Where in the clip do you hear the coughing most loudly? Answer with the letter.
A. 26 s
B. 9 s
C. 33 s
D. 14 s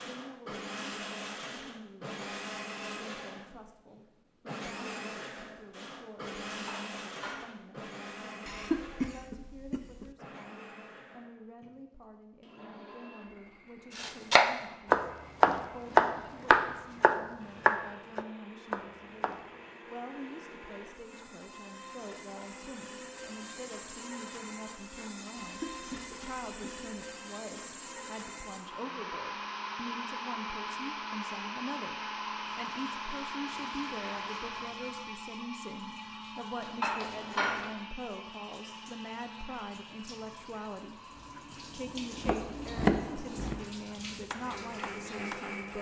B.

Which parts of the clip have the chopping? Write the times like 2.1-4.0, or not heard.
13.9-19.4, 41.1-45.5.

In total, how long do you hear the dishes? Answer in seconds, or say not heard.
2 s.